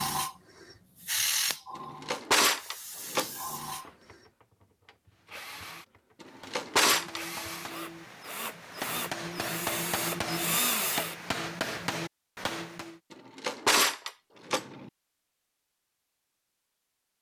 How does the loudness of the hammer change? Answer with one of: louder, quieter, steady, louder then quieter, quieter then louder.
louder.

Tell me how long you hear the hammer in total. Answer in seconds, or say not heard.
8 s.